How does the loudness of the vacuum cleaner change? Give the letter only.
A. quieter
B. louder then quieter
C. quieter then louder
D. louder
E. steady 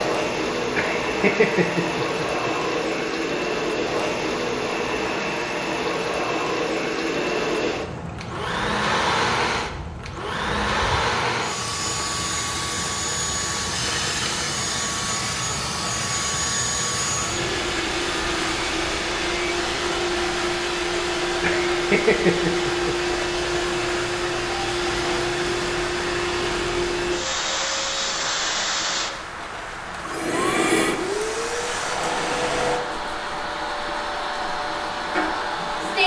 E.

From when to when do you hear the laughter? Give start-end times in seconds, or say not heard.
0.8-2.5, 21.4-23.1.